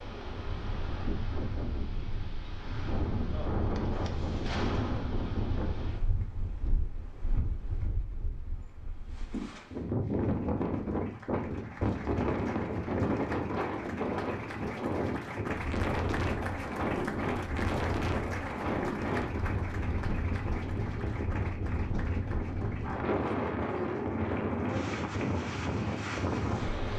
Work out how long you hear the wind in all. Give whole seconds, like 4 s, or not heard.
27 s.